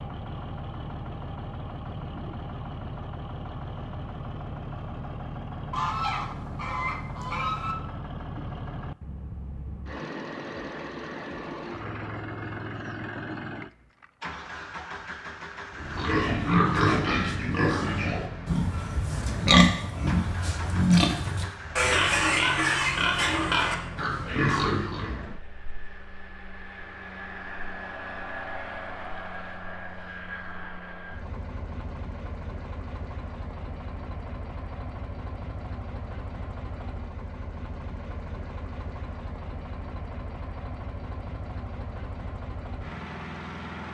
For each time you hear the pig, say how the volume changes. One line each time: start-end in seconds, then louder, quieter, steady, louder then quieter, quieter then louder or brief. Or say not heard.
15.8-25.1 steady.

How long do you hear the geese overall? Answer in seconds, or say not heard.
2 s.